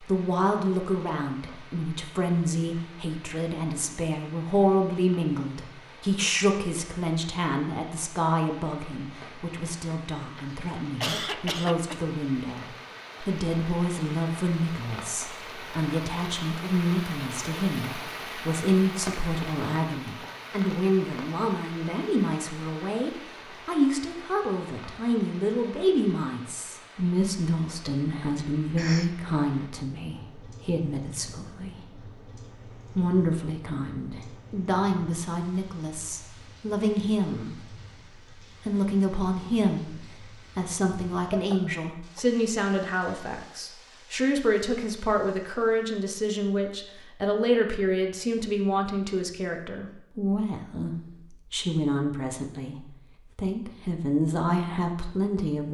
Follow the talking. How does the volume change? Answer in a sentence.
The volume of the talking stays about the same.